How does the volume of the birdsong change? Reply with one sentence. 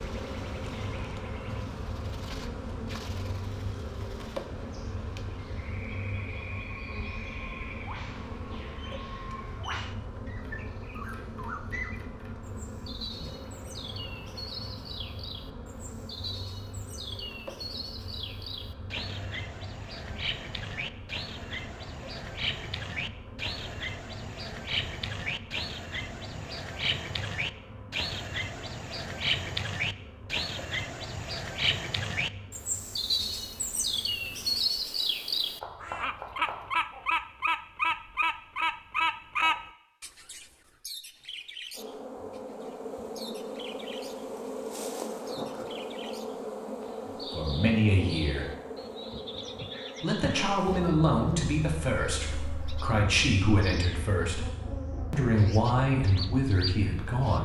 The volume of the birdsong goes up, then down.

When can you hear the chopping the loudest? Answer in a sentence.
The volume of the chopping peaks at 36 seconds.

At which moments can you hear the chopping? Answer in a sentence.
The chopping can be heard from 10.4 to 12.3 s and from 35.6 to 36.8 s.